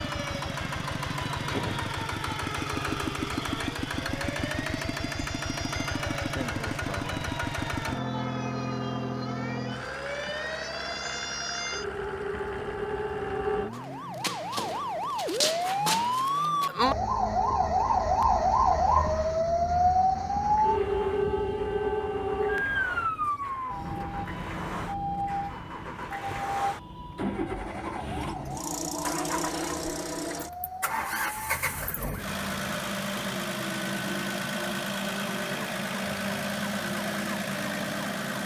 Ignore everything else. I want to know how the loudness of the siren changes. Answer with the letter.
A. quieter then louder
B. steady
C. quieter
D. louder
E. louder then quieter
E.